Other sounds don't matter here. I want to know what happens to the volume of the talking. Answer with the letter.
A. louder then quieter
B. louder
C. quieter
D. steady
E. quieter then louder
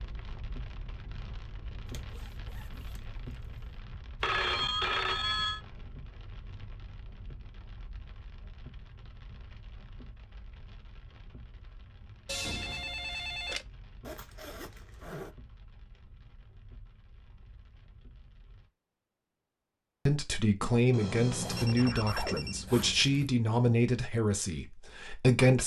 C.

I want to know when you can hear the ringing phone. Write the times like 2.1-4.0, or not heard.
4.2-5.6, 12.2-13.7, 20.9-22.6.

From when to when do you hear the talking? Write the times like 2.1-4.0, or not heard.
20.1-25.6.